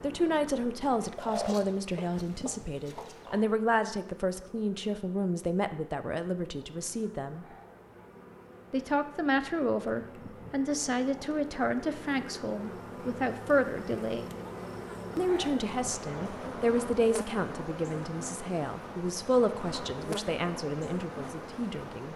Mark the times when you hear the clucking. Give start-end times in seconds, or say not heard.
1.1-3.5.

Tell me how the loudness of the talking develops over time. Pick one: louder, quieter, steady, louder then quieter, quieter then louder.
steady.